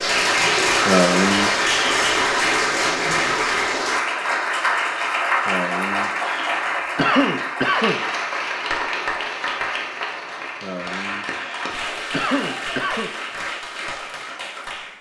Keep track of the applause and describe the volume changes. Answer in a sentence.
The volume of the applause goes down.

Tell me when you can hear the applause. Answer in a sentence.
The applause can be heard from 0.0 to 14.9 s.